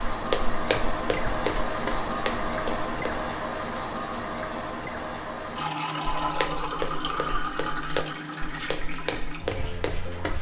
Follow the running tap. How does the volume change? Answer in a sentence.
The volume of the running tap goes down.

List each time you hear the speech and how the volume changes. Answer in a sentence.
The speech can't be heard in this clip.